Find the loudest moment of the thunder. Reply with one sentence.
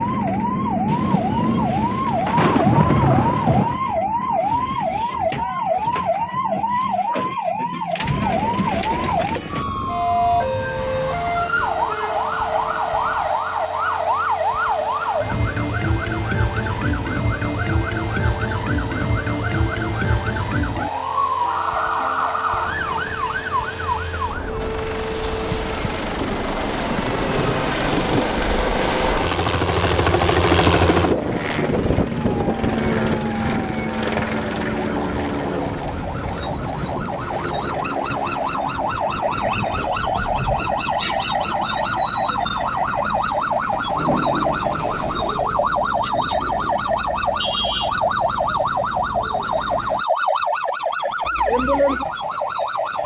The volume of the thunder peaks at 3 seconds.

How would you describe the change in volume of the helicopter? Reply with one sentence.
The volume of the helicopter goes up, then down.